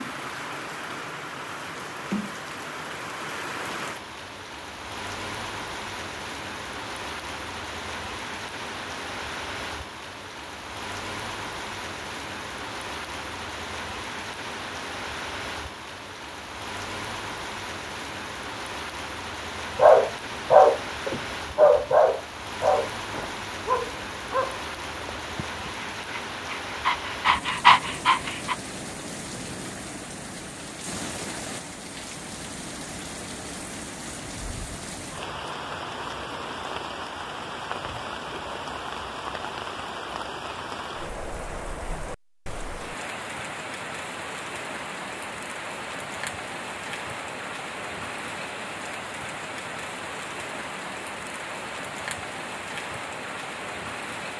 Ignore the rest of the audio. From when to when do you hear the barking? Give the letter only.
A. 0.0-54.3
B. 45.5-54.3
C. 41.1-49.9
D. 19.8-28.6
D.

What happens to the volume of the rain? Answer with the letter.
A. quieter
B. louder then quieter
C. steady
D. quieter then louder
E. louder
C.